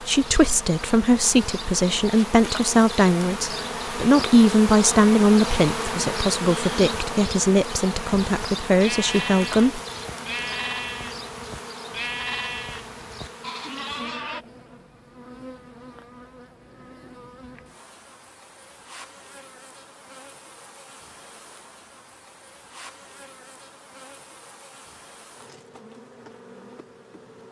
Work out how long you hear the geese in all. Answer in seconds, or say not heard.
not heard.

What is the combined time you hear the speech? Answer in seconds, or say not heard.
10 s.